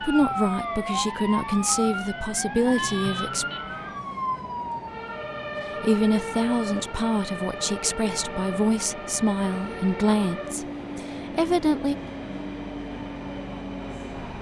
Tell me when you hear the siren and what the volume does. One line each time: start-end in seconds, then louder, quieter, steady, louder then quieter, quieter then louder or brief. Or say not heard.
0.0-14.3 quieter.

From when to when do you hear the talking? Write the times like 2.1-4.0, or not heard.
0.0-3.5, 5.8-11.9.